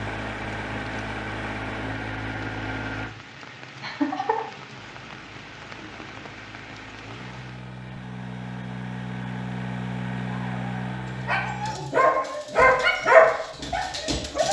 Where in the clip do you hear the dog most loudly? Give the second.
13 s.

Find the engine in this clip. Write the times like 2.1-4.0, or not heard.
0.0-3.1, 4.7-11.8.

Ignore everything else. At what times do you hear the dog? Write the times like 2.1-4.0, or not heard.
10.4-14.4.